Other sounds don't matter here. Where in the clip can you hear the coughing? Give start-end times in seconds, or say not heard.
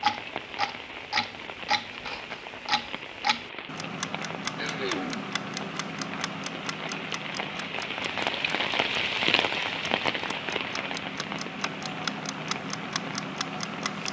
4.5-5.2.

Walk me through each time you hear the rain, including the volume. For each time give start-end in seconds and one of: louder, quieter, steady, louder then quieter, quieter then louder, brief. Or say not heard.
0.0-14.0 louder then quieter.